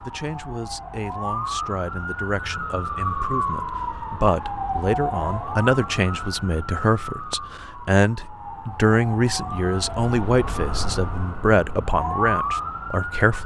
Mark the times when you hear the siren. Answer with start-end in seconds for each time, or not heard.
0.0-13.4.